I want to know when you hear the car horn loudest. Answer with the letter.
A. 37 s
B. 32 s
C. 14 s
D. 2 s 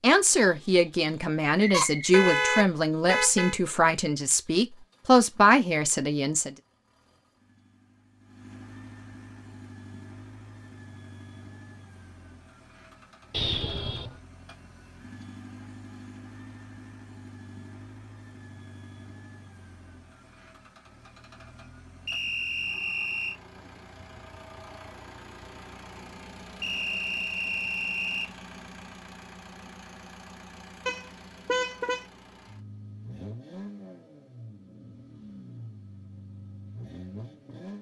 D.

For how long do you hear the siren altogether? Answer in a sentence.
The siren can't be heard in this clip.